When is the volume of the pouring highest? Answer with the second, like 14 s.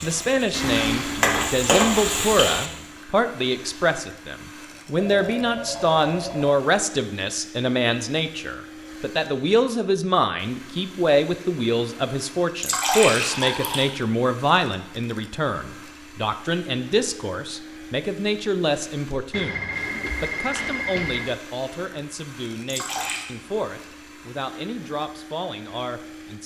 13 s.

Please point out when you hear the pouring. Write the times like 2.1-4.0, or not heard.
0.6-2.5, 12.6-13.8, 22.7-23.2.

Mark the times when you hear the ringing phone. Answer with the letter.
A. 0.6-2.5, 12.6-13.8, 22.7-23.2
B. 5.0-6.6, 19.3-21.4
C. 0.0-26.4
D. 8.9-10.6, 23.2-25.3
B.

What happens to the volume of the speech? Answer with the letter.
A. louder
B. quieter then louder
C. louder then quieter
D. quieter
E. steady
D.